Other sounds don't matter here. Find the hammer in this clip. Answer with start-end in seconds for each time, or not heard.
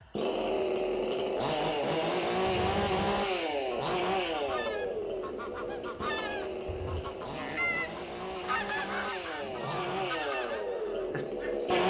not heard.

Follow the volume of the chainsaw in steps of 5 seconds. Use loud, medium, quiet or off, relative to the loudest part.
loud, medium, loud.